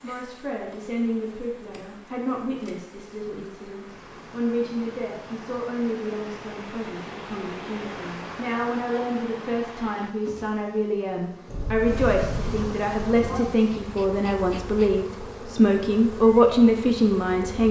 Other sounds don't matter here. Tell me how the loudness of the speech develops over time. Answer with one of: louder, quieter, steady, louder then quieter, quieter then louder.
louder.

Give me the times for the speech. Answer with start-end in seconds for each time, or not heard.
0.0-17.6.